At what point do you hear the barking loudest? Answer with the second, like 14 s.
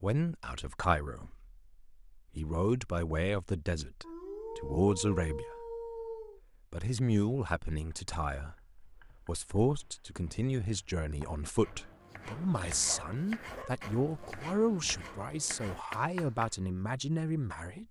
5 s.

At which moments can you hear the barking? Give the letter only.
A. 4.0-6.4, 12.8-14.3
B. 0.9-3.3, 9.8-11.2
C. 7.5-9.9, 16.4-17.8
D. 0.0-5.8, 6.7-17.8
A.